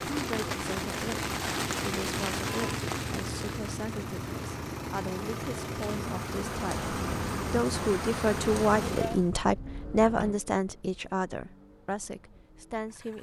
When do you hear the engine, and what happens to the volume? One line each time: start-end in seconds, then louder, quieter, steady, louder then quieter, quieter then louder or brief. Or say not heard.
0.0-13.1 quieter.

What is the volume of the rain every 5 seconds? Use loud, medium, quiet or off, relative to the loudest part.
loud, loud, off.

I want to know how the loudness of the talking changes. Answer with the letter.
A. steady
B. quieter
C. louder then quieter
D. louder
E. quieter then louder
C.